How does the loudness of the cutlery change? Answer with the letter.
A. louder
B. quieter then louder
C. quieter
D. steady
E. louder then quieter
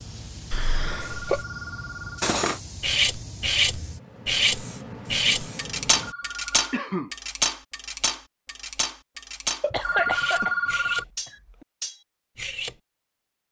C.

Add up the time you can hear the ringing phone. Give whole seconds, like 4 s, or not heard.
3 s.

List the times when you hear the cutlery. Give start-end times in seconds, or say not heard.
2.2-12.8.